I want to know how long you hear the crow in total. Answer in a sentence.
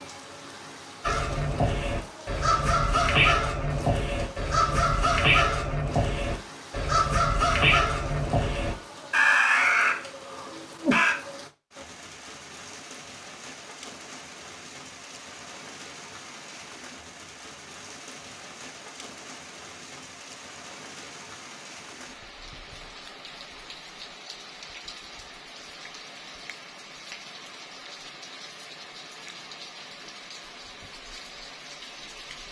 You can hear the crow for 10 seconds altogether.